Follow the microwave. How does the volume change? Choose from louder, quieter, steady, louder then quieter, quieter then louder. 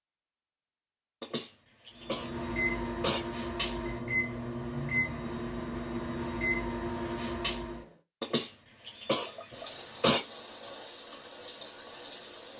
steady.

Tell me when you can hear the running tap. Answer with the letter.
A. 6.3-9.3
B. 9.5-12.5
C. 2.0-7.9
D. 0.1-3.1
B.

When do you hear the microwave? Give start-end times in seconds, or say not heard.
2.0-7.9.